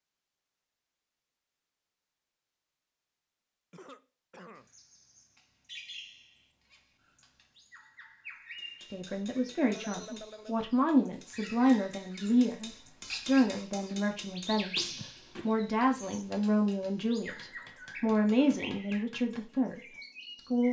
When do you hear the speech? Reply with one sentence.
You can hear the speech from 8.8 to 20.6 s.